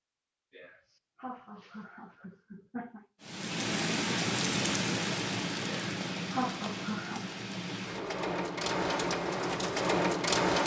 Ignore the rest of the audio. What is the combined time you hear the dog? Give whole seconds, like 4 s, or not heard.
not heard.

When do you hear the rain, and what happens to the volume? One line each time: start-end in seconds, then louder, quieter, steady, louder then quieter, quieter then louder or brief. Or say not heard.
3.2-10.6 quieter then louder.